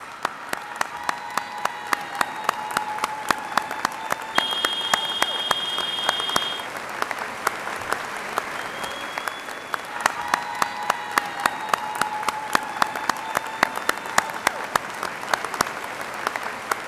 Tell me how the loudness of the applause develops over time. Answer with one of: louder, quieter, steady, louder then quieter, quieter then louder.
steady.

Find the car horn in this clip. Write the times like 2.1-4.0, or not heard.
4.3-6.7.